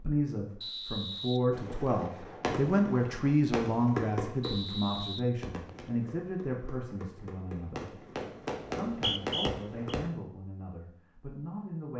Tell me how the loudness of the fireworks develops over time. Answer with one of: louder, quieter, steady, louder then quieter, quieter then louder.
quieter then louder.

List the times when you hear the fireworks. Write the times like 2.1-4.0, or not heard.
1.5-10.0.